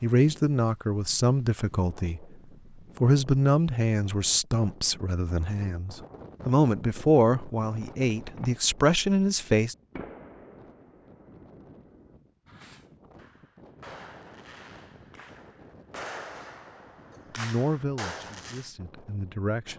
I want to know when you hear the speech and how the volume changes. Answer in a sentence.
You can hear the speech briefly from 0.0 to 2.2 s; from 3.0 to 9.8 s, getting quieter then louder; and briefly from 17.4 to 19.7 s.